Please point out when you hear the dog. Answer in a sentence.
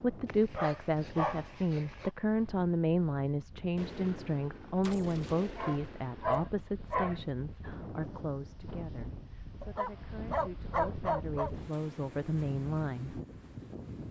You can hear the dog from 0.2 to 2.1 s, from 5.5 to 7.2 s and from 9.6 to 11.5 s.